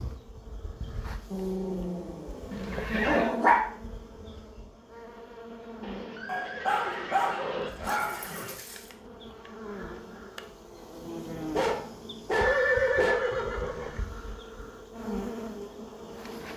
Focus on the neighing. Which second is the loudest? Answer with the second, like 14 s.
13 s.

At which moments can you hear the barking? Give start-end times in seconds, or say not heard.
1.3-2.3, 3.0-3.6, 6.2-8.8, 11.5-13.3.